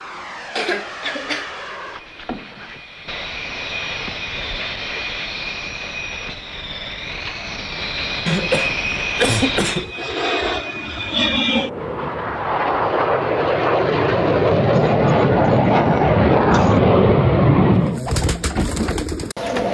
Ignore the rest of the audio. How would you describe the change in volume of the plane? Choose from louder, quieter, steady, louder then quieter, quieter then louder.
louder.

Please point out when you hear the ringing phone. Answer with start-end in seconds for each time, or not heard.
not heard.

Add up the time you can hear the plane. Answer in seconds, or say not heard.
18 s.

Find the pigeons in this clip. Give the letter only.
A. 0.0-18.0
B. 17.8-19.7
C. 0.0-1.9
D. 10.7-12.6
B.